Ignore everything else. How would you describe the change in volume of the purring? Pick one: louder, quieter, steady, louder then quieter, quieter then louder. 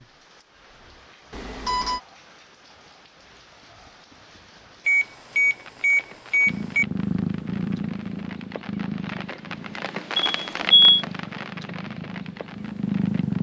quieter then louder.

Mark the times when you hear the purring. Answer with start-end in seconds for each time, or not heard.
6.5-13.3.